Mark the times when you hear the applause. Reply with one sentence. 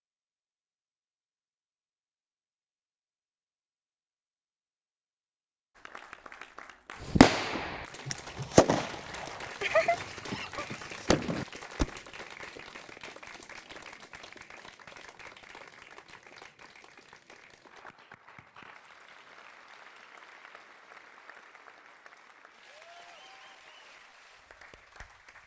The applause can be heard from 5.8 to 25.4 s.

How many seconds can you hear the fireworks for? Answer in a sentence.
The fireworks can be heard for 5 seconds in total.